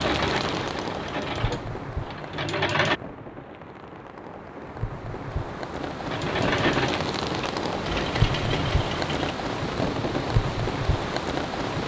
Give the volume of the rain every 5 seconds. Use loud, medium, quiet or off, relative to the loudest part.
medium, loud, loud.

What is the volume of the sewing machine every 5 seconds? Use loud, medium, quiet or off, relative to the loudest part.
loud, loud, off.